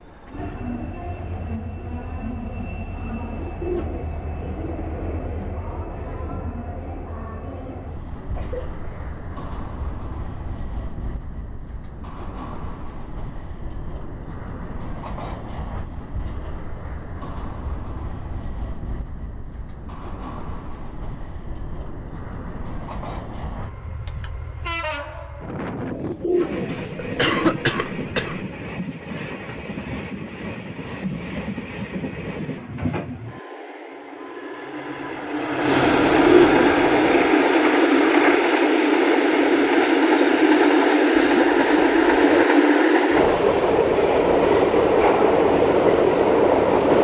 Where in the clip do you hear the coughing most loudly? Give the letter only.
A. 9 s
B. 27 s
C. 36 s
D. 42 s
B.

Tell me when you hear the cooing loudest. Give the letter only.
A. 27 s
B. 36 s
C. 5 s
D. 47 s
B.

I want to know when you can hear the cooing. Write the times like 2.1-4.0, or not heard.
3.1-5.5, 25.8-27.7, 35.8-37.4.